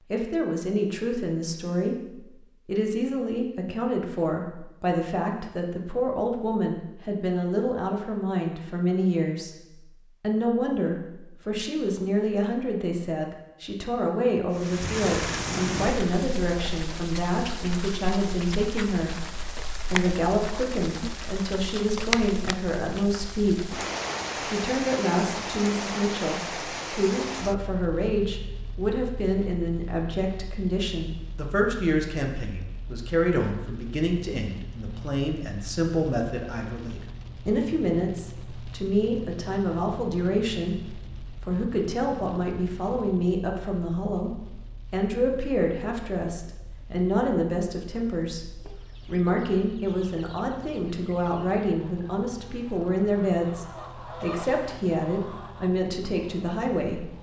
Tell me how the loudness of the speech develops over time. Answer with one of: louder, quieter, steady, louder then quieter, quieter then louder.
steady.